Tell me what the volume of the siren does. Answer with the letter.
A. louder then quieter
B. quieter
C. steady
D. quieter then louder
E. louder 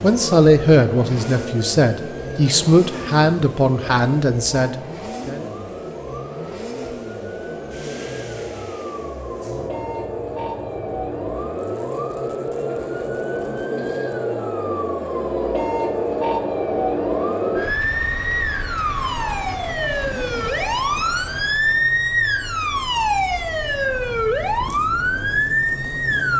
E.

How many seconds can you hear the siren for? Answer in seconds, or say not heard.
26 s.